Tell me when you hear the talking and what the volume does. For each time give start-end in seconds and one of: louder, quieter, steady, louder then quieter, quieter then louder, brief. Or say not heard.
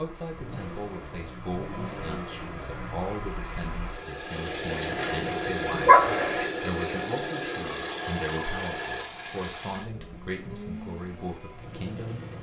0.0-12.3 steady.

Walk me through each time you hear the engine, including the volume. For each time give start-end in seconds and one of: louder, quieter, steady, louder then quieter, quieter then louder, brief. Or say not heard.
0.0-12.3 louder then quieter.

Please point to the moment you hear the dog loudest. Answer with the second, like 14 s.
6 s.